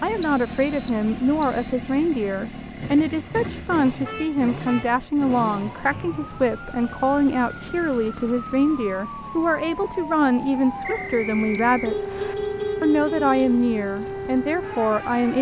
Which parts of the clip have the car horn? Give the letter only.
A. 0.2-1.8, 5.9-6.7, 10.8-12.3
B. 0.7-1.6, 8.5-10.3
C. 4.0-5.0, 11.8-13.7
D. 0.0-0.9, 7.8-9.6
C.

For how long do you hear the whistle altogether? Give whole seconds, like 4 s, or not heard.
4 s.